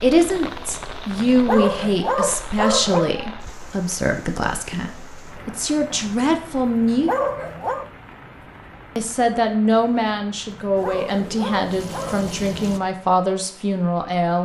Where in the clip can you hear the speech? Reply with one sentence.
The speech can be heard from 0.0 to 7.1 s and from 8.9 to 14.4 s.